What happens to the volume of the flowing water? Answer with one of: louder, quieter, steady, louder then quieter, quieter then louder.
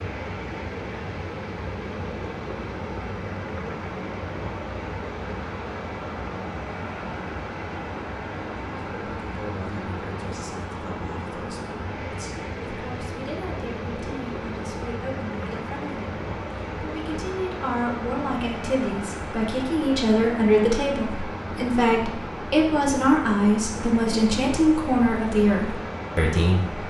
steady.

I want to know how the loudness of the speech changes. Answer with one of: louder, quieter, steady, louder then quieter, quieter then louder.
louder.